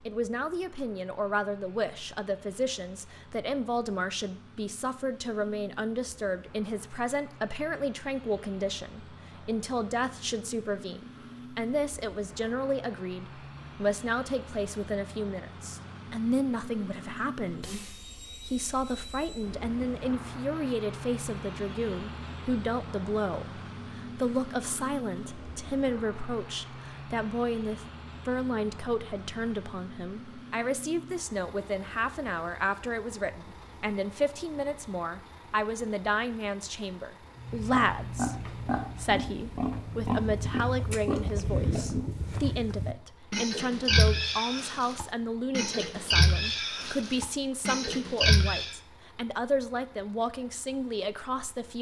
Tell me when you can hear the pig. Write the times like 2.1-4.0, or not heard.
37.4-48.8.